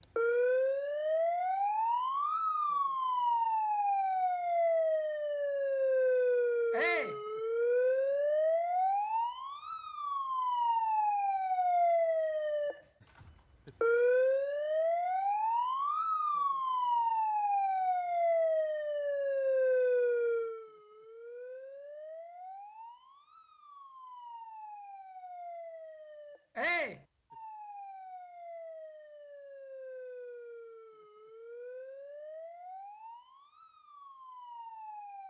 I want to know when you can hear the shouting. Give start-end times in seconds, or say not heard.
6.7-7.2, 26.6-27.0.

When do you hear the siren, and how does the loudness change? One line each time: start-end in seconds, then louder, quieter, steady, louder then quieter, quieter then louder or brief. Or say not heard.
0.1-35.2 quieter.